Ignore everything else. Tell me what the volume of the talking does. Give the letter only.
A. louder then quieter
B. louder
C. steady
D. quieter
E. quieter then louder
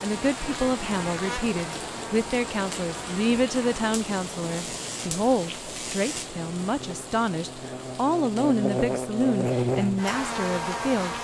C.